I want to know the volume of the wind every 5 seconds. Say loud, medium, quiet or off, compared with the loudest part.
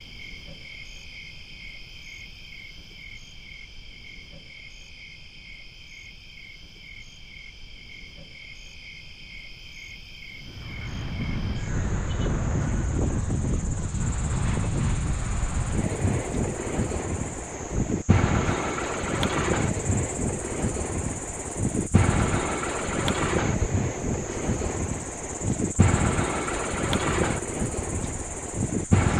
off, off, loud, loud, loud, loud.